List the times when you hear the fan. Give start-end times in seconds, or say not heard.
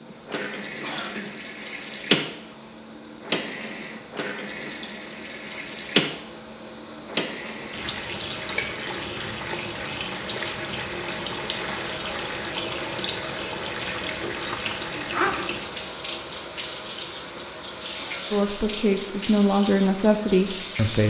0.0-20.9.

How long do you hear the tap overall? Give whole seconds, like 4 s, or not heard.
21 s.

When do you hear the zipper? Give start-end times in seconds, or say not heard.
14.2-15.3.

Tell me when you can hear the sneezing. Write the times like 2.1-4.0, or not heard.
0.8-1.3, 17.9-18.4.